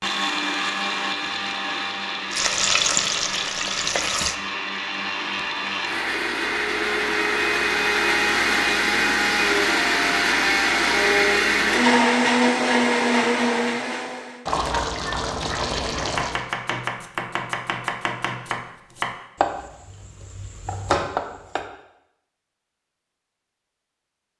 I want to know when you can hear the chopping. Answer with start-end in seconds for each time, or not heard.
16.0-21.6.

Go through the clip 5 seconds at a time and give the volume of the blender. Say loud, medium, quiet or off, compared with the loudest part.
medium, loud, loud, off, off.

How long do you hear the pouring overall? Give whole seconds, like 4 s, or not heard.
2 s.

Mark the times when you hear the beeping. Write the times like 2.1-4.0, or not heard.
not heard.